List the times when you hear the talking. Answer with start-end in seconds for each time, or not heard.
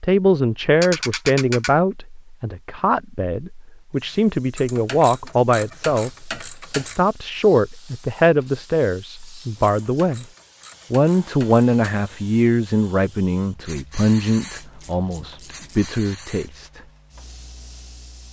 0.0-10.2, 10.9-16.8.